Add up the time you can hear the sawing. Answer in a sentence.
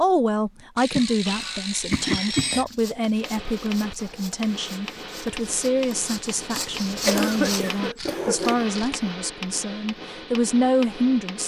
The sawing can be heard for 6 seconds in total.